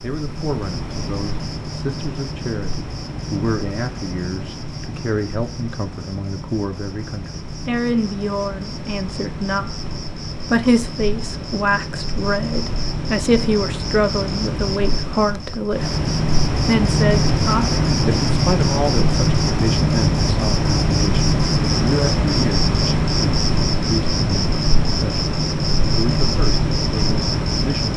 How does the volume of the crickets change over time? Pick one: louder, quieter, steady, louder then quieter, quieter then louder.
louder.